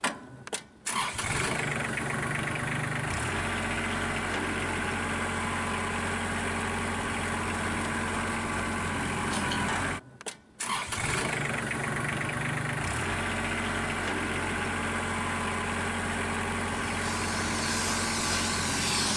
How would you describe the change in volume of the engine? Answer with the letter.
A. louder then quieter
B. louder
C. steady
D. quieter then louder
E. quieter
C.